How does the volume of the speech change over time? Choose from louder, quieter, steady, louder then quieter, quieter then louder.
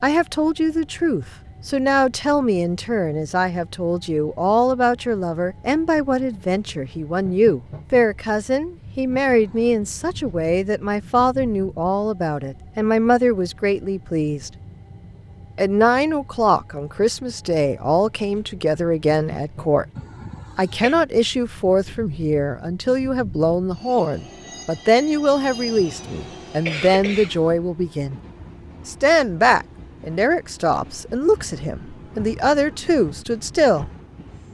steady.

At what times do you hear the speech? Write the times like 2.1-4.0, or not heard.
0.0-14.5, 15.6-19.9, 20.6-28.2, 28.9-33.9.